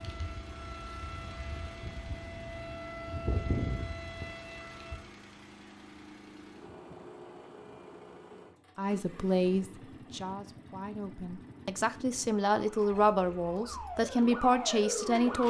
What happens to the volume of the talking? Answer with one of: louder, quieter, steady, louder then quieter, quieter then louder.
quieter then louder.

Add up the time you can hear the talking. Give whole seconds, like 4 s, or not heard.
7 s.